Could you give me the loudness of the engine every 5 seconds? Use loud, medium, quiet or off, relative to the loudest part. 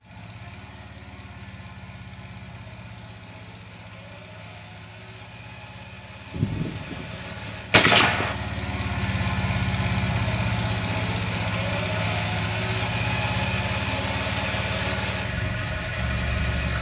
quiet, medium, loud, loud.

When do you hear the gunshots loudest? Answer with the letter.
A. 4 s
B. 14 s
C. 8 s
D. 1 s
C.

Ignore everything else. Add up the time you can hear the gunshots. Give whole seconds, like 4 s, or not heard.
2 s.